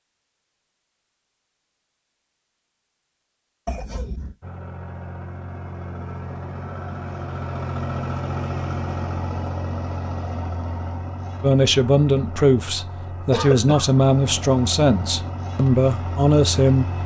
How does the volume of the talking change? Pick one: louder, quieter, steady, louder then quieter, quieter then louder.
steady.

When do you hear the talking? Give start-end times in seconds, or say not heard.
11.4-16.9.